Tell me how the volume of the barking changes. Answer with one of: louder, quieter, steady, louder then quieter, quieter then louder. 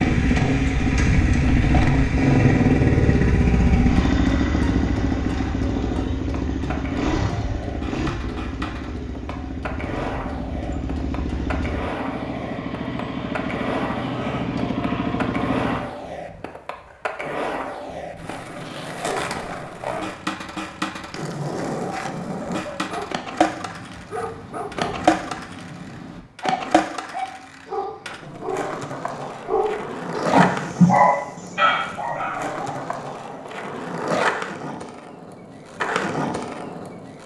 louder then quieter.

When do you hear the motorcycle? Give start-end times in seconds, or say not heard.
0.0-15.8.